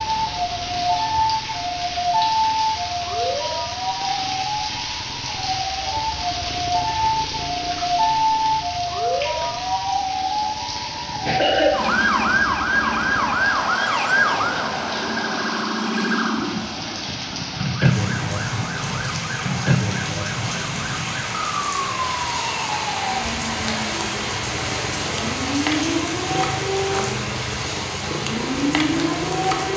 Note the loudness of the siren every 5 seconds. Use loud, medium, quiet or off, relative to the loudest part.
loud, loud, loud, loud, medium, loud.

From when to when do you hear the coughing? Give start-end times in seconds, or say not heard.
10.7-11.9.